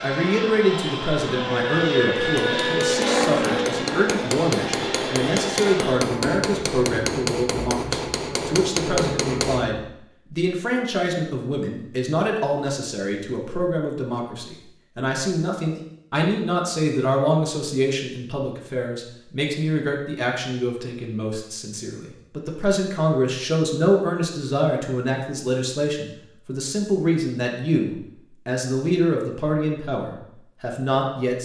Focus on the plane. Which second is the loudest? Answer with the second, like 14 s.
3 s.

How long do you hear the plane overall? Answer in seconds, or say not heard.
10 s.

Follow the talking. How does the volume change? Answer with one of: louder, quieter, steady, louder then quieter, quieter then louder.
steady.